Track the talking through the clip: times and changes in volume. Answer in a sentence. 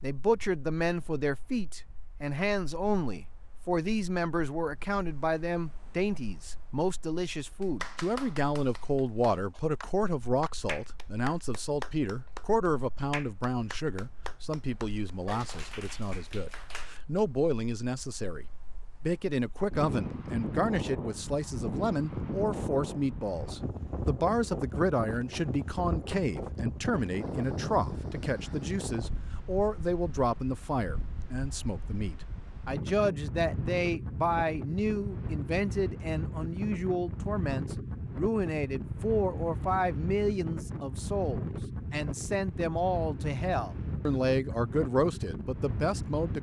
You can hear the talking from 0.0 to 46.3 s, at a steady volume.